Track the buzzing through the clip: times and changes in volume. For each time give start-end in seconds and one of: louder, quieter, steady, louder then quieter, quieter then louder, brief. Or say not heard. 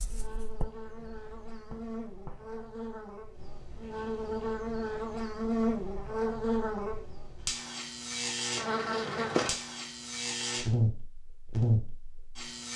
0.0-12.7 louder.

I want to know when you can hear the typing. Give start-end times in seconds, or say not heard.
not heard.